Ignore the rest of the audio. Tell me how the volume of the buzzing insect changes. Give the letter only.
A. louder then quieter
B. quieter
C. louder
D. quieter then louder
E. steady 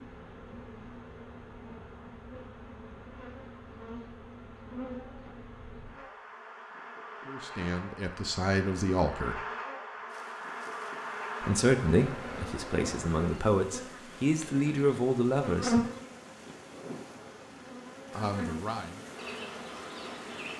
A.